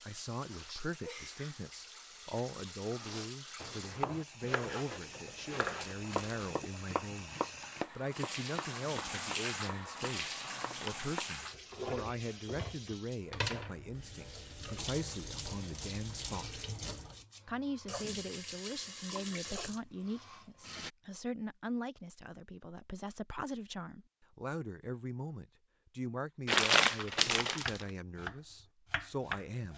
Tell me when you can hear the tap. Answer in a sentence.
The tap can be heard from 0.0 to 20.9 s.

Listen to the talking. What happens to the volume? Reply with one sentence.
The volume of the talking stays about the same.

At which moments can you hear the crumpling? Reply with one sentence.
The crumpling can be heard from 5.6 to 6.6 s and from 26.4 to 27.9 s.